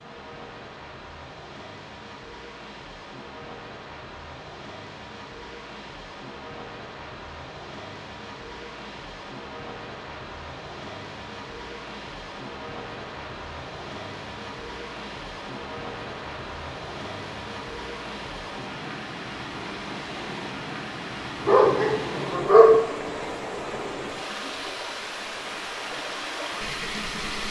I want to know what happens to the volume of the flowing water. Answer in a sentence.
The loudness of the flowing water goes up.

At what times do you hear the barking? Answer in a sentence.
The barking can be heard from 21.4 to 22.8 s.